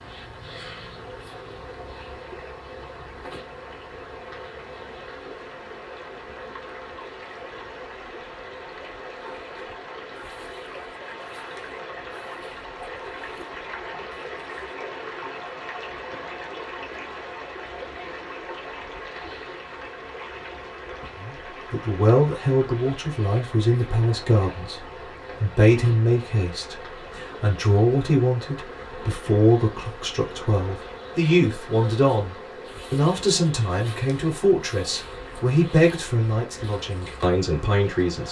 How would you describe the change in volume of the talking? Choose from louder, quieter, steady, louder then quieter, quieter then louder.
steady.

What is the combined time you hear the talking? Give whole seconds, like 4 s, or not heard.
17 s.